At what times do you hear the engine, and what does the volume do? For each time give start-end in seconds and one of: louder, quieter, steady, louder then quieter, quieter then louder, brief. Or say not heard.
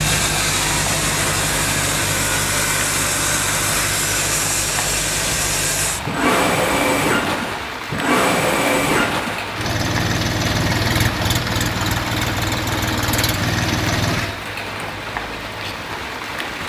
0.0-14.3 steady.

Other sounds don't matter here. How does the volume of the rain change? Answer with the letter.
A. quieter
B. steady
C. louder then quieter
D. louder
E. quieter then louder
B.